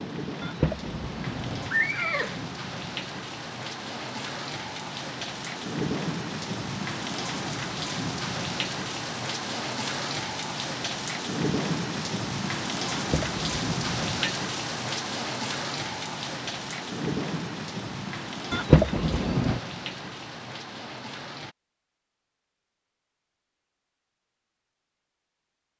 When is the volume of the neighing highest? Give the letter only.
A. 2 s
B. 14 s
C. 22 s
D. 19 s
D.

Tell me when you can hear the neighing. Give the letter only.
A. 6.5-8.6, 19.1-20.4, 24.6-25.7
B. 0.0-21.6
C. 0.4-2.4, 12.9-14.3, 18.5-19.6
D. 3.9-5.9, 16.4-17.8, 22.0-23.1
C.